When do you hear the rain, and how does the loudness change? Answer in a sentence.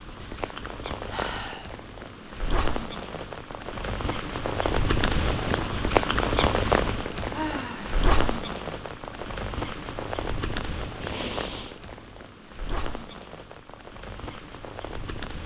You can hear the rain from 0.0 to 15.4 s, getting louder then quieter.